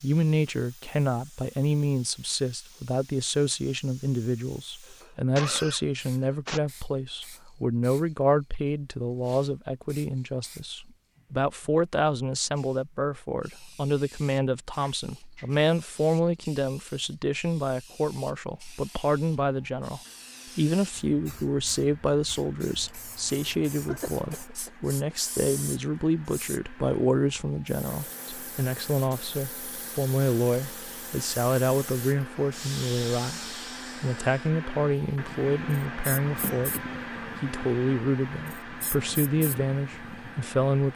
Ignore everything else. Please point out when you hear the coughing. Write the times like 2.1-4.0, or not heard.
4.8-6.6, 23.4-25.1, 36.2-37.0.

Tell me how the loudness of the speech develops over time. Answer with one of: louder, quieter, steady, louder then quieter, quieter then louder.
steady.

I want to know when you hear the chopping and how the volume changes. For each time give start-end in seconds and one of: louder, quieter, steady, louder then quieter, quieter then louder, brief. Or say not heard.
not heard.